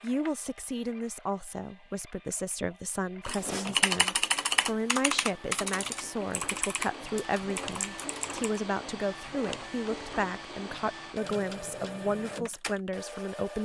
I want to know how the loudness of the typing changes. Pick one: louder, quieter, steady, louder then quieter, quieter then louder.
quieter.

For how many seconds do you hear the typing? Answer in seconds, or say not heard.
5 s.